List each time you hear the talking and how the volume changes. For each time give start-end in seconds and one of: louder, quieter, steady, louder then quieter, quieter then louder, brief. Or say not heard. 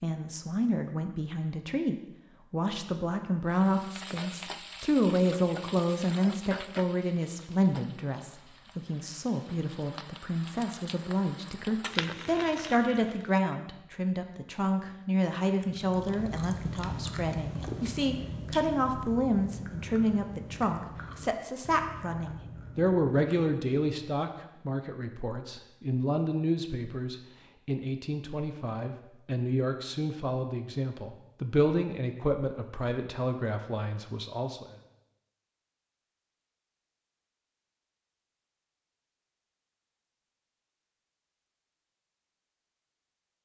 0.0-34.8 steady.